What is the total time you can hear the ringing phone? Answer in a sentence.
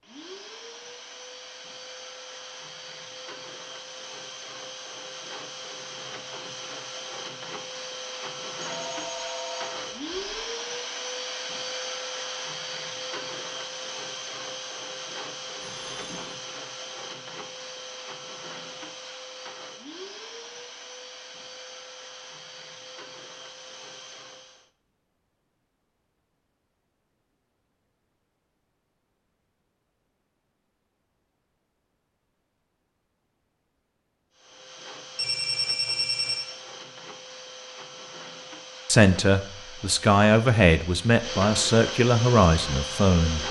You can hear the ringing phone for 4 seconds altogether.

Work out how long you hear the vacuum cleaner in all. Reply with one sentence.
You can hear the vacuum cleaner for 34 seconds altogether.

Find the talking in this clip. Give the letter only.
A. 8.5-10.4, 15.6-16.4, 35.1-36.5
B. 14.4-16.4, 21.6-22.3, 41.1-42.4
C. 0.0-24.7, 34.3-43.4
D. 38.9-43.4
D.